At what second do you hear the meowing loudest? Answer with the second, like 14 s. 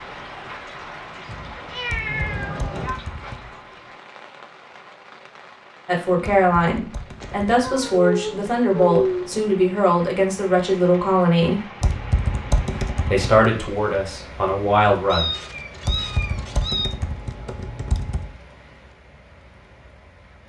9 s.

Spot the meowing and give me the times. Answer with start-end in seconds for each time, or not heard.
1.2-3.0, 7.2-9.6, 15.1-16.9.